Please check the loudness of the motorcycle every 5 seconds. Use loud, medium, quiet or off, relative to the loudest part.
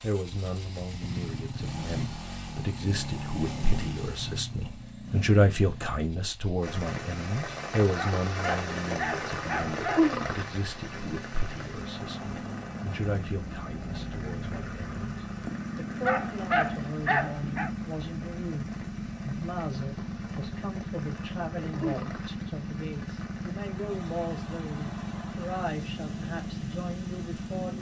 loud, medium, loud, loud, loud, loud.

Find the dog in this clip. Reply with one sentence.
You can hear the dog from 8.0 to 10.1 s and from 16.1 to 17.7 s.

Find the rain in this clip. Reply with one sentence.
You can hear the rain from 6.6 to 27.7 s.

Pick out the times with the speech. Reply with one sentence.
The speech can be heard from 0.0 to 27.7 s.